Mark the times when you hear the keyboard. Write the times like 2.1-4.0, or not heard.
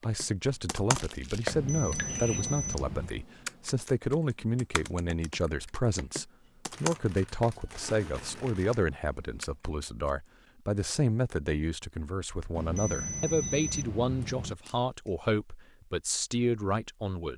0.0-10.2.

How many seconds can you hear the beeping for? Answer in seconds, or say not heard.
4 s.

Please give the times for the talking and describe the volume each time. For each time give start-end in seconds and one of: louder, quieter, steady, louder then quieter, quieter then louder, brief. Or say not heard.
0.0-17.3 steady.